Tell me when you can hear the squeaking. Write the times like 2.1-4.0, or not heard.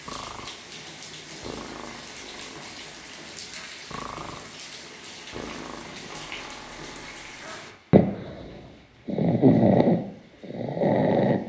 6.0-7.5.